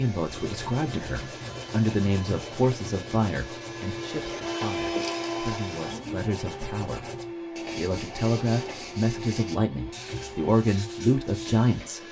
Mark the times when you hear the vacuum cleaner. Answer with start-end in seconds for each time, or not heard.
0.0-12.0.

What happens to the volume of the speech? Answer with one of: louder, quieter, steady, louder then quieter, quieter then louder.
quieter then louder.